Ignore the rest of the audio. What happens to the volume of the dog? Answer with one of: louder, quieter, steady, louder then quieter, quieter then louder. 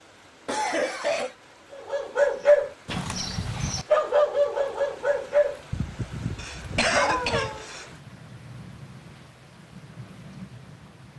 quieter.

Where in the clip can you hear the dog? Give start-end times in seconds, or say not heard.
1.8-7.7.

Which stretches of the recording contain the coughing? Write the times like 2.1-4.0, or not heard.
0.5-1.4, 6.3-7.8.